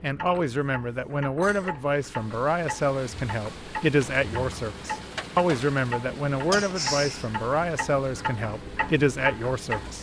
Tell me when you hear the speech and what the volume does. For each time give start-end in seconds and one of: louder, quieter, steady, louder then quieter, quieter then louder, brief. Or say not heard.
0.0-9.9 steady.